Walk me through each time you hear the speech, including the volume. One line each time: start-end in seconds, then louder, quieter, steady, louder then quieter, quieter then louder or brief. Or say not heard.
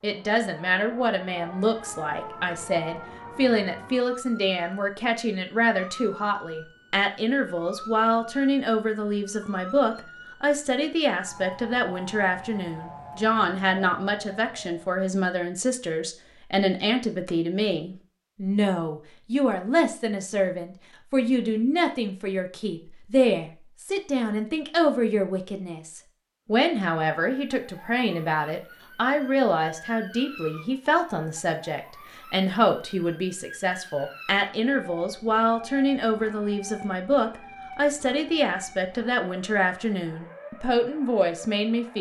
0.0-41.9 steady.